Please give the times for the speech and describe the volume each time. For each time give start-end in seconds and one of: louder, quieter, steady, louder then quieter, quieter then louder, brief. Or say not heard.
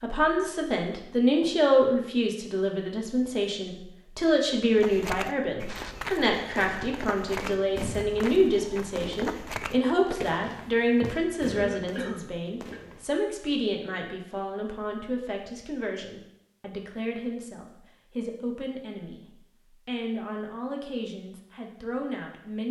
0.0-19.2 quieter
19.9-22.6 brief.